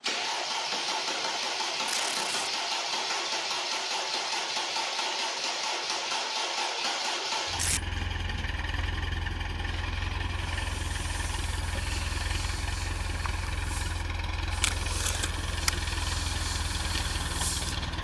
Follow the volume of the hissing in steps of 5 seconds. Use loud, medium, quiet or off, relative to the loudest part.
off, off, medium, loud.